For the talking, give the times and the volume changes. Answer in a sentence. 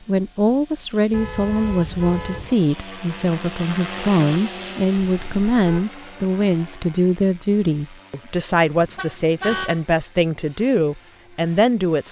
You can hear the talking from 0.1 to 12.0 s, at a steady volume.